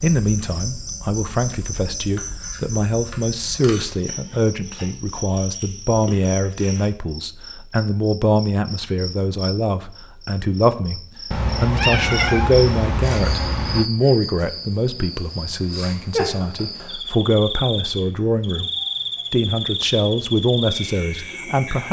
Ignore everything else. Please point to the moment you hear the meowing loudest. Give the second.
12 s.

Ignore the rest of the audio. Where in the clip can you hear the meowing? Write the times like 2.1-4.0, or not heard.
11.3-13.9.